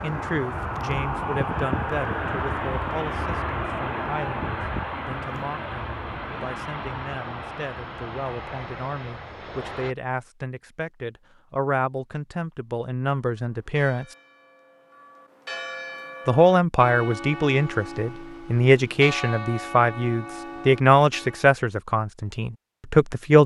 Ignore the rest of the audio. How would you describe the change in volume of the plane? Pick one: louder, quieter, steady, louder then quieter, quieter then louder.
quieter.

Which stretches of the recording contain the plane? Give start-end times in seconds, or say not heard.
0.0-9.9.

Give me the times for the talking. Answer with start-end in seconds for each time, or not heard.
0.0-14.2, 16.2-23.4.